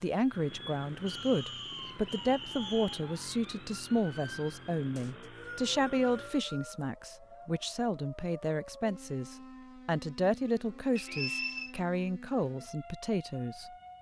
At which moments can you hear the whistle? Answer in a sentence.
The whistle can be heard from 1.1 to 3.0 s, from 5.0 to 6.8 s and from 10.9 to 11.8 s.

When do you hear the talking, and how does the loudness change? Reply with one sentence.
The talking can be heard from 0.0 to 13.7 s, at a steady volume.